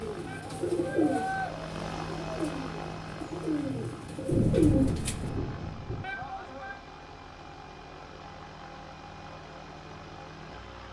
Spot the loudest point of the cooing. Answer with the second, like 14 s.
5 s.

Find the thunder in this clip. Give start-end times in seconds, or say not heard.
4.3-6.0.